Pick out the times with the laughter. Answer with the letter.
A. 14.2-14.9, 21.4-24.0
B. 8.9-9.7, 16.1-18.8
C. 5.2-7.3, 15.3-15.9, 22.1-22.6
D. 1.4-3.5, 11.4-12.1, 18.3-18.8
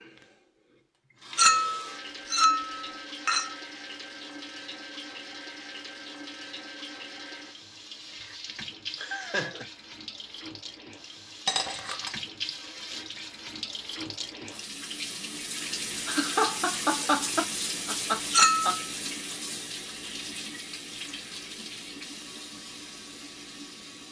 B.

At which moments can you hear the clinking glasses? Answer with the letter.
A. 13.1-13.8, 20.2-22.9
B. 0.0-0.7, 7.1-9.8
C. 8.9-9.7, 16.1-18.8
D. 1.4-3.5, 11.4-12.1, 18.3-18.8
D.